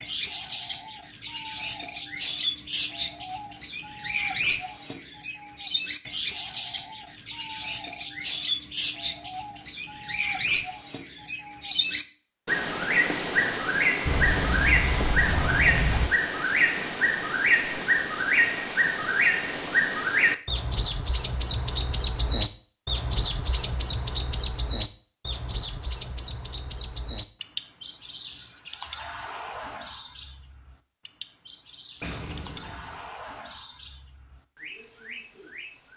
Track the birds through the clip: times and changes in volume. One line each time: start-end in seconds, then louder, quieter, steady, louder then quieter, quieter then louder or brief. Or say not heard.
0.0-35.9 quieter.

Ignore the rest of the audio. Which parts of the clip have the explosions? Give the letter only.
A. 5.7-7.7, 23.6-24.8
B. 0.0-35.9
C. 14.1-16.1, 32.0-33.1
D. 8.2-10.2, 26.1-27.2
C.